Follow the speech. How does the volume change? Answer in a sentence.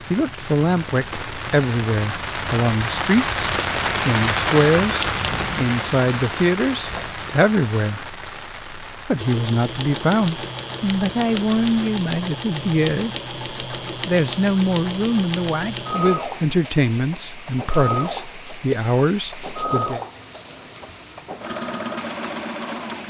The loudness of the speech stays about the same.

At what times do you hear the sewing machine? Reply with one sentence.
The sewing machine can be heard from 9.2 to 23.0 s.